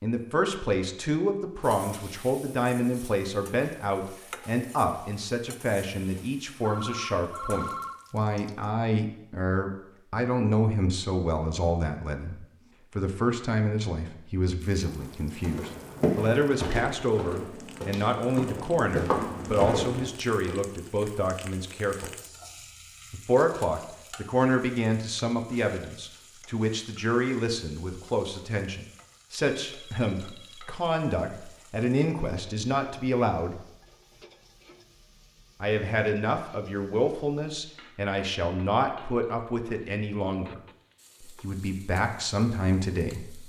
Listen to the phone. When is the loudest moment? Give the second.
8 s.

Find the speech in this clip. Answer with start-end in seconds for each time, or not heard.
0.0-22.1, 23.1-33.6, 35.6-40.6, 41.2-43.4.